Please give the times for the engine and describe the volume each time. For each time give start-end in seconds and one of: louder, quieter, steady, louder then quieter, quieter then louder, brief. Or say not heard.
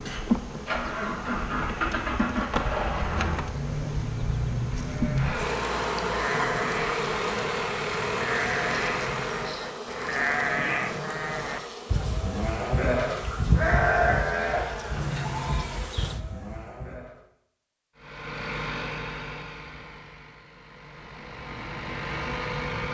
0.0-9.7 steady
17.9-22.8 quieter then louder.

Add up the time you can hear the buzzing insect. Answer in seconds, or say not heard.
16 s.